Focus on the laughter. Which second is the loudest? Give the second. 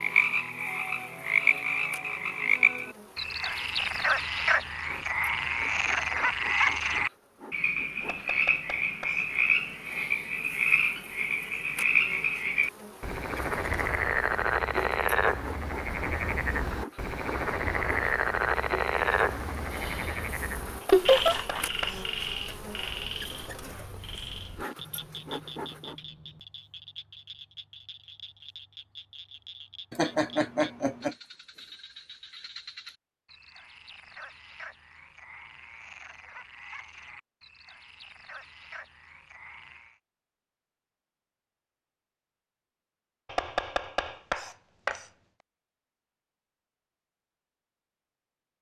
21 s.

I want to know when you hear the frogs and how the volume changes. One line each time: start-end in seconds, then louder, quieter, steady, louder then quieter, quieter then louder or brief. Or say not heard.
0.0-40.0 quieter.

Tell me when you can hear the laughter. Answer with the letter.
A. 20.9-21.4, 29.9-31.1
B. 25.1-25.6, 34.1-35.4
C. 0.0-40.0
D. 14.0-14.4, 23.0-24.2
A.